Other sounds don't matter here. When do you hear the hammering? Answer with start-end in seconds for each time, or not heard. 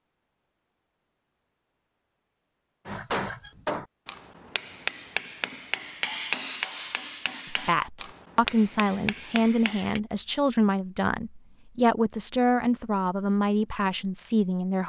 2.9-10.0.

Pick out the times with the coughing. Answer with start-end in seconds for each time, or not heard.
not heard.